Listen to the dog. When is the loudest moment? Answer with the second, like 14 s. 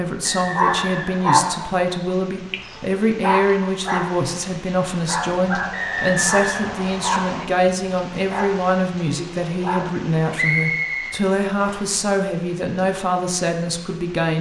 1 s.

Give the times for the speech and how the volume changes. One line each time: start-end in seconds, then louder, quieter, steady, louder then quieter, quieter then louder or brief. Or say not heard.
0.0-14.3 steady.